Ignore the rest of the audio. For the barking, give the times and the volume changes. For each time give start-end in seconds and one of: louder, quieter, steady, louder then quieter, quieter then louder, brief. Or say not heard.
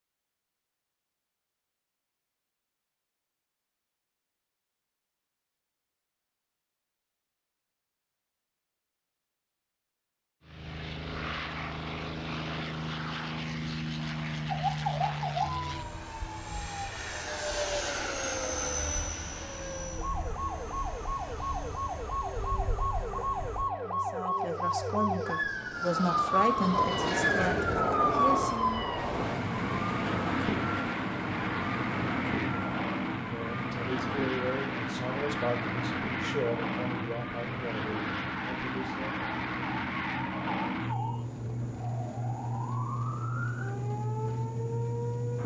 not heard.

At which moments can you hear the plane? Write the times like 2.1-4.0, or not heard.
10.4-45.4.